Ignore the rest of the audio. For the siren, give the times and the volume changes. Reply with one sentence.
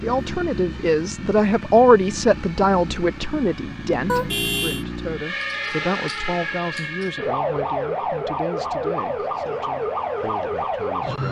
The siren can be heard from 0.0 to 11.2 s, getting louder.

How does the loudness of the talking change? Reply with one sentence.
The volume of the talking goes down.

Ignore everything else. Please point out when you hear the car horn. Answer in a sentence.
The car horn can be heard from 4.0 to 4.8 s.